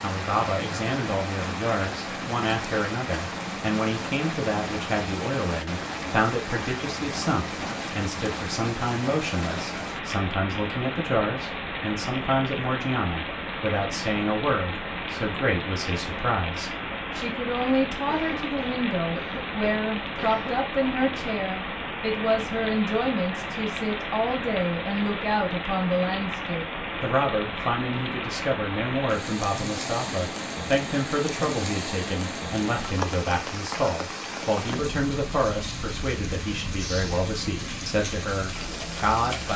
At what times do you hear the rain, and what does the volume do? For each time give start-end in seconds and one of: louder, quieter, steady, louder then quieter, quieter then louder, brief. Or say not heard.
0.0-39.5 steady.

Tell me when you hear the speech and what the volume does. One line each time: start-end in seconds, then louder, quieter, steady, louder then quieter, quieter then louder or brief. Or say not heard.
0.0-39.5 steady.